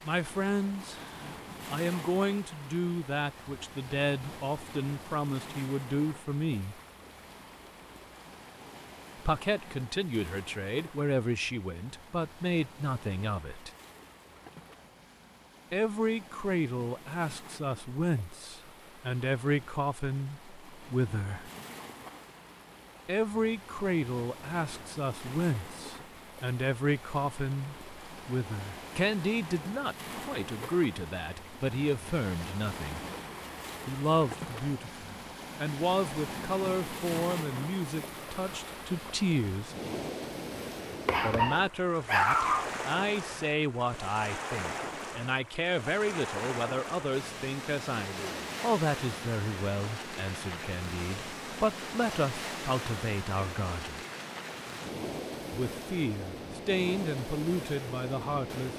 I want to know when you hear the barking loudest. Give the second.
42 s.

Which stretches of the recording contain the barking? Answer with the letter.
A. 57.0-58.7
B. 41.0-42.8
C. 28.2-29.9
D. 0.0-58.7
B.